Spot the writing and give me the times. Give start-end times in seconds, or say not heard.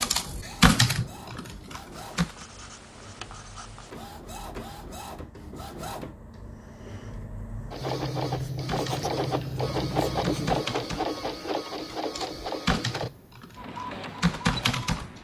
1.9-3.9, 7.8-10.7.